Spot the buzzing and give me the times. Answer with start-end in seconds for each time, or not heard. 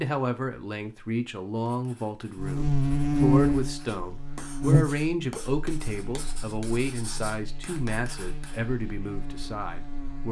2.4-10.2.